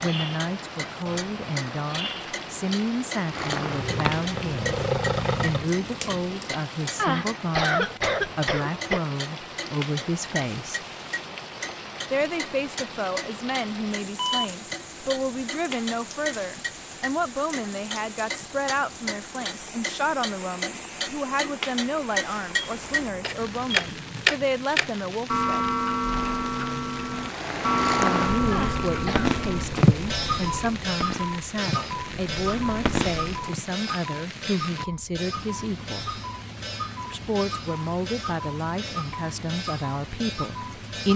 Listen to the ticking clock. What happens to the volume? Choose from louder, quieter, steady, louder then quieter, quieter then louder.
louder then quieter.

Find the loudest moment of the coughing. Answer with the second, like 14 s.
8 s.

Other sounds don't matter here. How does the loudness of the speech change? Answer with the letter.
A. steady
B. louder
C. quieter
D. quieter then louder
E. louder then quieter
A.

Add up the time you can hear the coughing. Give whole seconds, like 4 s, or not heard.
3 s.